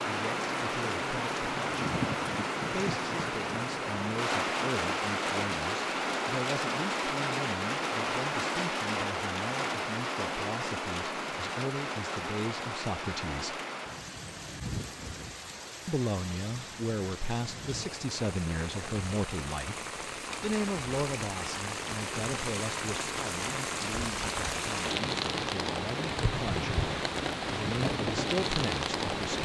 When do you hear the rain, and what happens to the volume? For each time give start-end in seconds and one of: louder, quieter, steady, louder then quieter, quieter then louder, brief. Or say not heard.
0.0-29.4 quieter then louder.